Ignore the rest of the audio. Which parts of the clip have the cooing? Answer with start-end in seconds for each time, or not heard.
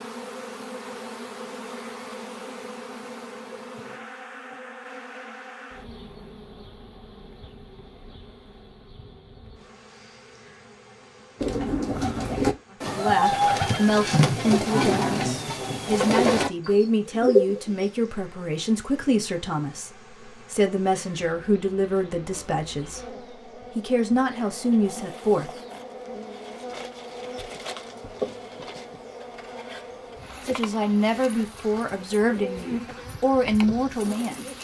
11.4-17.9, 31.1-34.6.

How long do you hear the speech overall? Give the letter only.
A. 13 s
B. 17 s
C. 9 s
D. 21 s
B.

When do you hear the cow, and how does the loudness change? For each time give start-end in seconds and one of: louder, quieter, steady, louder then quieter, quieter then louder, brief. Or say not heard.
not heard.